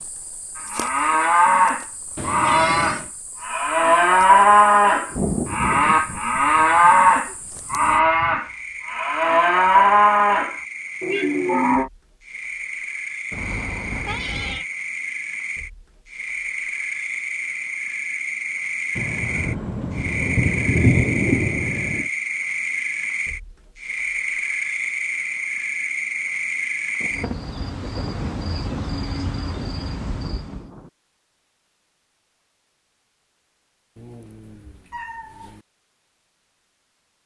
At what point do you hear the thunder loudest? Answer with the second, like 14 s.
21 s.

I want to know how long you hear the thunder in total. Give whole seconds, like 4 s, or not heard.
10 s.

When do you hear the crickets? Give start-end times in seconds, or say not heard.
0.0-30.7.